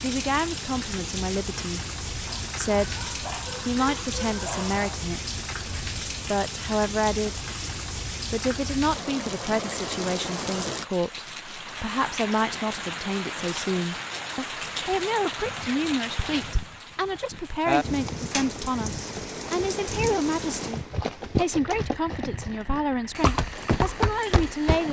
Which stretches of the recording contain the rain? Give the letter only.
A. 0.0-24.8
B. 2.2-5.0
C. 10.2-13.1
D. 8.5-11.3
A.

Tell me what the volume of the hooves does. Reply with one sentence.
The volume of the hooves goes up.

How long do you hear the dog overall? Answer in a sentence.
The dog can be heard for 3 seconds in total.